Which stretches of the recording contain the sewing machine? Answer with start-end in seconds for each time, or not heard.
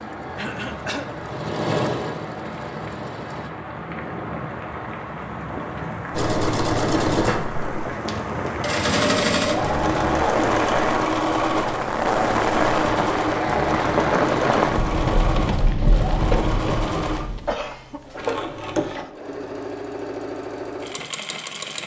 0.0-3.5, 6.1-21.8.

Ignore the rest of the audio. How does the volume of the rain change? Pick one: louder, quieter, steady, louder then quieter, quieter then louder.
louder.